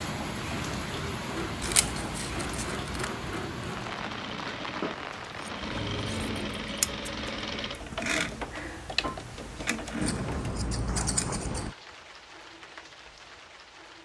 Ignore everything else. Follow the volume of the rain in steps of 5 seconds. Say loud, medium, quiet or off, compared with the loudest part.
loud, medium, medium.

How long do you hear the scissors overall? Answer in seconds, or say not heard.
5 s.